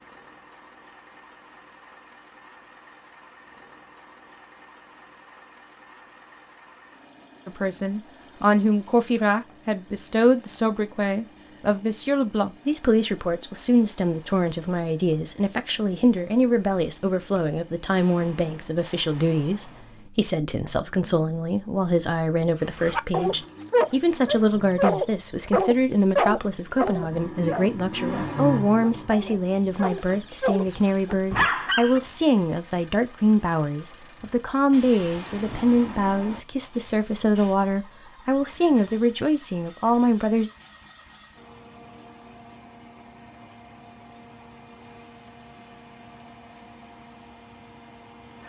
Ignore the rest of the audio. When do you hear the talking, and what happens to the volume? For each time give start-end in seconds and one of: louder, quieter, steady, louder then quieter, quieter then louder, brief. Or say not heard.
7.5-40.5 steady.